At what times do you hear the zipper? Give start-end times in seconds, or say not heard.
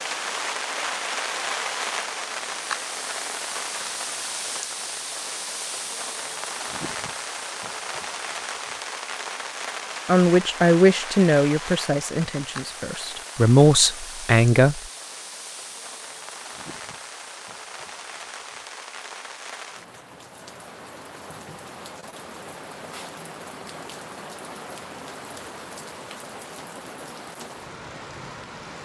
not heard.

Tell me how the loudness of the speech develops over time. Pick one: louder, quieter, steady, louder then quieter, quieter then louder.
quieter then louder.